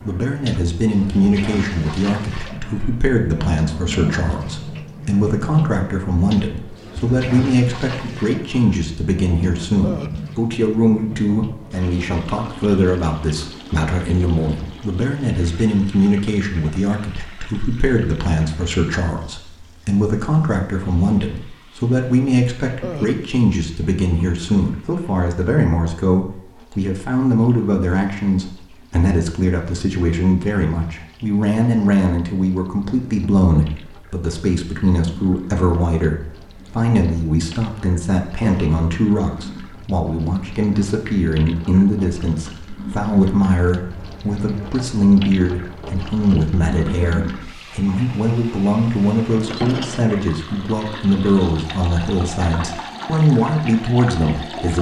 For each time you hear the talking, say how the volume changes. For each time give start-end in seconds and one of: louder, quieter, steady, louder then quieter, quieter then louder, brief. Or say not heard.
0.0-54.7 steady.